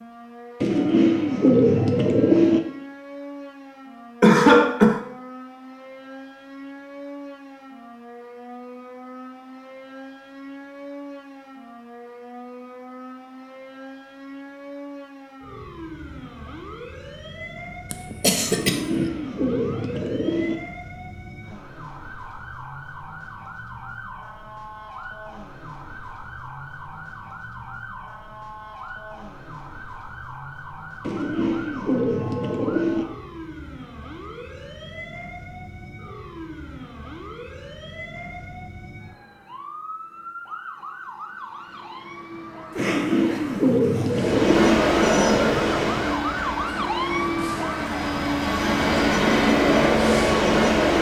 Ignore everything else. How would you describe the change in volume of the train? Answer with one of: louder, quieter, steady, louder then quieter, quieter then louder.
quieter then louder.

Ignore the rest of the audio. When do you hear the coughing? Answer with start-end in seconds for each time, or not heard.
4.2-5.0, 17.9-19.1, 42.8-44.1.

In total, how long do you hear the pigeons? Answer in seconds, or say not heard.
8 s.